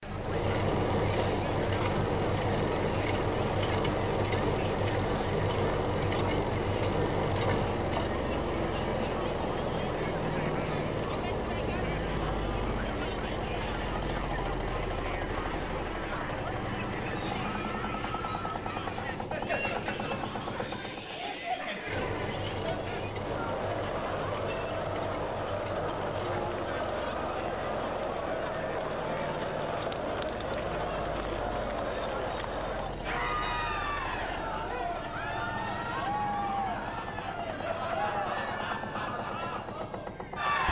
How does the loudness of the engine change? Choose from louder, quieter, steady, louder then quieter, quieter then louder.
quieter.